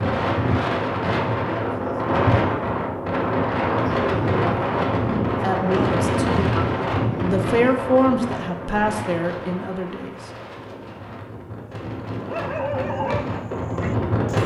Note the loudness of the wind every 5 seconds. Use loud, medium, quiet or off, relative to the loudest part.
loud, loud, medium.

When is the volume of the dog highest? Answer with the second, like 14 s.
13 s.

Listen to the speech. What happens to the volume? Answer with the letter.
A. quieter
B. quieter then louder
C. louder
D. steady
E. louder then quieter
E.